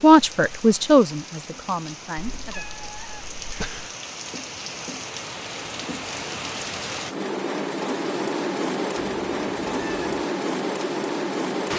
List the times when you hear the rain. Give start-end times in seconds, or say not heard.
0.0-11.7.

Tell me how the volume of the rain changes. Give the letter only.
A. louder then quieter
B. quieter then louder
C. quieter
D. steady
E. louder
E.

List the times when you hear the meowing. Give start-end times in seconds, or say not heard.
2.1-4.0, 8.9-10.2.